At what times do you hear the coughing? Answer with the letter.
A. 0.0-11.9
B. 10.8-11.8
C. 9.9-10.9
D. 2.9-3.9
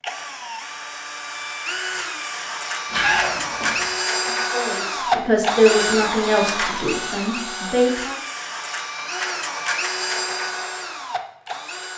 D.